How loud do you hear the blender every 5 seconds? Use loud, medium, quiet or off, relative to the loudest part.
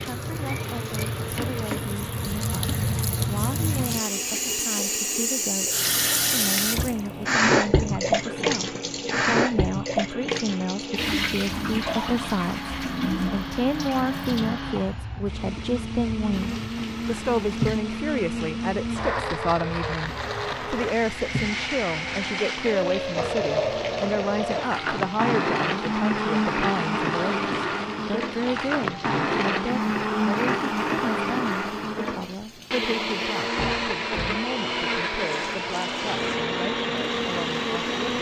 quiet, quiet, medium, medium, loud, loud, loud, loud.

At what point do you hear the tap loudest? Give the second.
8 s.